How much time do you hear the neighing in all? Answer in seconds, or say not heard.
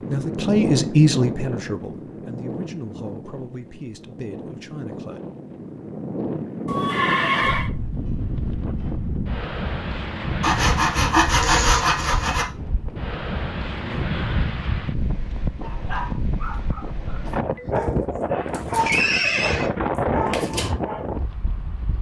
2 s.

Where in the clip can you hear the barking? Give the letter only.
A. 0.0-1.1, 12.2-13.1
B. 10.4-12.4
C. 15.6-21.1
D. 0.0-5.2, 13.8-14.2
C.